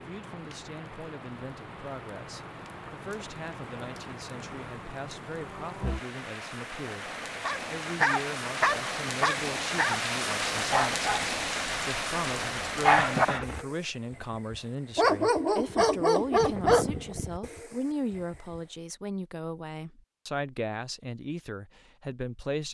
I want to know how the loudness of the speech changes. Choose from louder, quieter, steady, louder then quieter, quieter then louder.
louder.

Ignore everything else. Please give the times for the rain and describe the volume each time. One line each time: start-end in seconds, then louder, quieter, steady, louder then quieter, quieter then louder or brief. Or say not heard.
0.0-13.7 louder.